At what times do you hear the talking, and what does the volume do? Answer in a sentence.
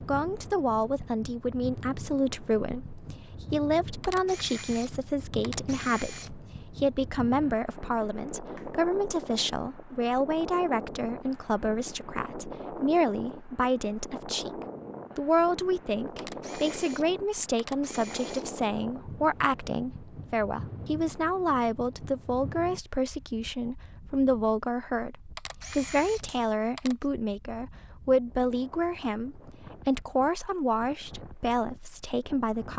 You can hear the talking from 0.0 to 32.7 s, at a steady volume.